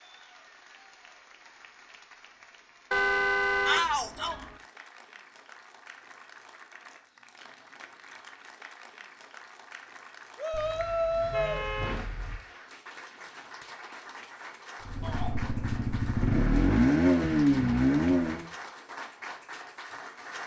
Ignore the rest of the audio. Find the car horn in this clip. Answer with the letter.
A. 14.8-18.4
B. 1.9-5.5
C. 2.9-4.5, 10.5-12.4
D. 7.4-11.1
C.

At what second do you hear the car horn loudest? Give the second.
3 s.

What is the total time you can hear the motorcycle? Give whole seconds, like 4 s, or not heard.
4 s.